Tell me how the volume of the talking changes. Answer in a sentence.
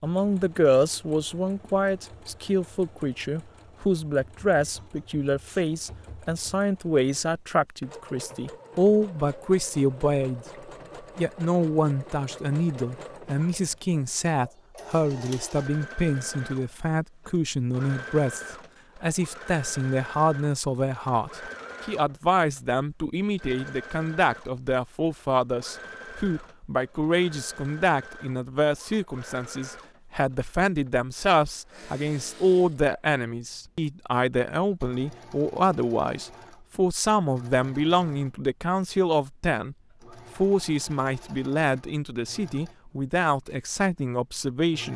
The loudness of the talking stays about the same.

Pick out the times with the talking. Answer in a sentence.
You can hear the talking from 0.0 to 10.4 s, from 11.2 to 39.8 s and from 40.4 to 44.9 s.